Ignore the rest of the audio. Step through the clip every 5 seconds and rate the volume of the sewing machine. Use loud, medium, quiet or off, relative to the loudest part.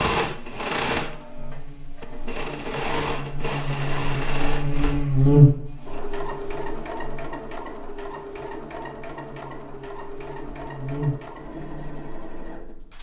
loud, medium, medium.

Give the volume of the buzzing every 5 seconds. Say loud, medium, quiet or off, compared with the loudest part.
medium, loud, medium.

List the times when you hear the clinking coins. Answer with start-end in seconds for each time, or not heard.
not heard.